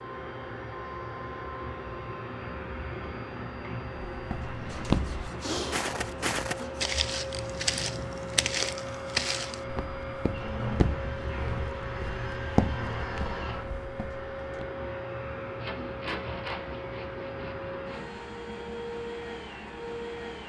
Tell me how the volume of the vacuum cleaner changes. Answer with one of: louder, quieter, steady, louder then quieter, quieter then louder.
steady.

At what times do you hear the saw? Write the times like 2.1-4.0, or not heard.
4.7-6.8, 15.6-18.1.